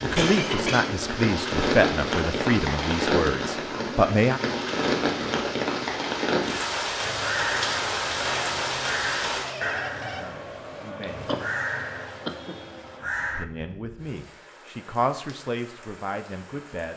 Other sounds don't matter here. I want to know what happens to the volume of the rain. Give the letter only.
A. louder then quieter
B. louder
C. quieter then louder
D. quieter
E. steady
D.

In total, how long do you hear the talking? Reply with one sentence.
You can hear the talking for 9 seconds altogether.